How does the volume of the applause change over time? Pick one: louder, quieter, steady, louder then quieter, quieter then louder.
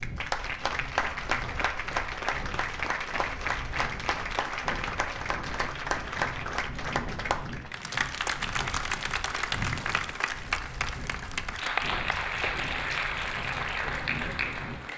steady.